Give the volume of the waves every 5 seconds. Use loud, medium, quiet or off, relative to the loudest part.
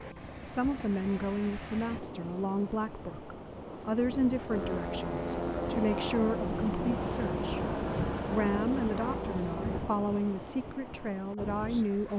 medium, loud, medium.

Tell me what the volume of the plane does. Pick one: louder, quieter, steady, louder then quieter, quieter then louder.
steady.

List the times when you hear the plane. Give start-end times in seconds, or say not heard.
4.5-9.8.